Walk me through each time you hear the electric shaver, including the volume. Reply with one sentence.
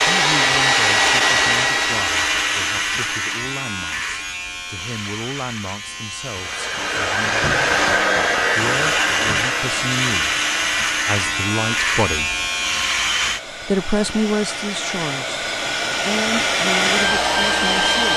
The electric shaver can be heard from 0.0 to 13.4 s, getting quieter then louder.